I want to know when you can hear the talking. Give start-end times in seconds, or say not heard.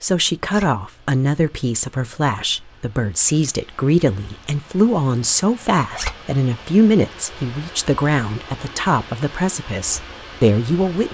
0.0-11.1.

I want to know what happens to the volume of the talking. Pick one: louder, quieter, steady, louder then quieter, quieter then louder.
steady.